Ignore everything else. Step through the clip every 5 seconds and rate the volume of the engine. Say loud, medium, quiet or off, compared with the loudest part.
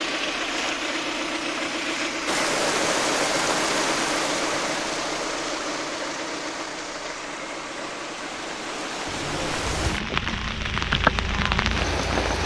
loud, medium, medium.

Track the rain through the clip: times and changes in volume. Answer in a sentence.
The rain can be heard from 2.2 to 12.4 s, getting quieter then louder.